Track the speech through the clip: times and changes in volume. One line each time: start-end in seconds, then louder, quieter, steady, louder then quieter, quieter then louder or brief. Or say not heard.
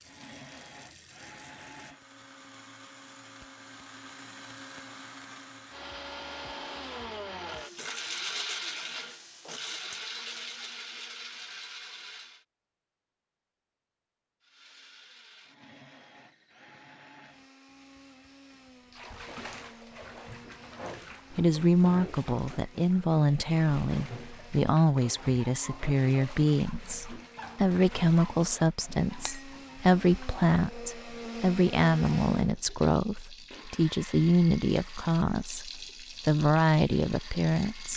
21.4-37.9 steady.